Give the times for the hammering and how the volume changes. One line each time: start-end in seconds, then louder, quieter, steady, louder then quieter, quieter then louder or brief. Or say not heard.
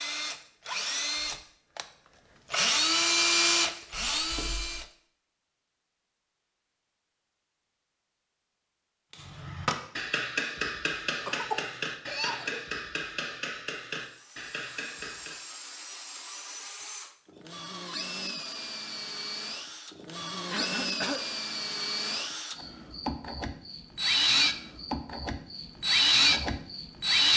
9.1-15.4 quieter.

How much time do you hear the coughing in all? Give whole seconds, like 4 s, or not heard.
3 s.